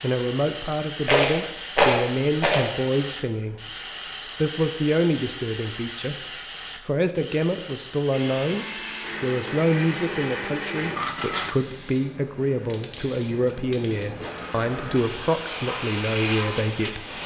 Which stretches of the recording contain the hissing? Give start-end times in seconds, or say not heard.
0.0-17.2.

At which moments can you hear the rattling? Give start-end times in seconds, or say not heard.
1.1-2.6.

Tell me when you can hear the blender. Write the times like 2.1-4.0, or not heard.
8.1-11.6.